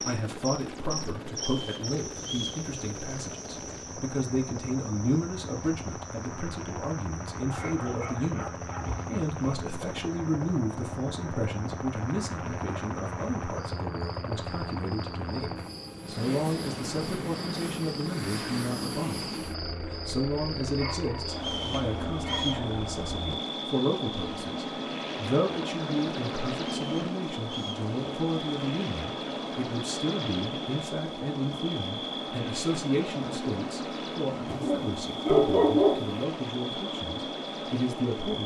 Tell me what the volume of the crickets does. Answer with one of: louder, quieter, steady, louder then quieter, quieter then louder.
quieter then louder.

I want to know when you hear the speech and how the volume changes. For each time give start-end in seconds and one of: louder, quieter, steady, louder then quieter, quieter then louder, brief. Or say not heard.
0.0-38.4 steady.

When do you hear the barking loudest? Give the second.
36 s.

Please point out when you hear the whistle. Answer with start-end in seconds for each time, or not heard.
1.4-2.6, 21.4-22.6, 26.8-27.9.